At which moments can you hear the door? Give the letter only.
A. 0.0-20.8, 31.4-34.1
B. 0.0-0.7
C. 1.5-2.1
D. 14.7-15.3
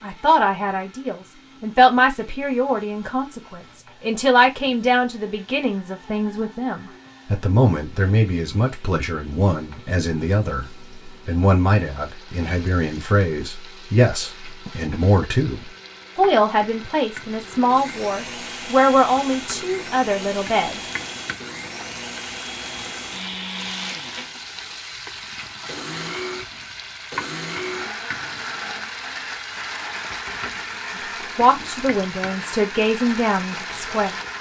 D.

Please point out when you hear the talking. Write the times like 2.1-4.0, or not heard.
0.0-20.8, 31.4-34.1.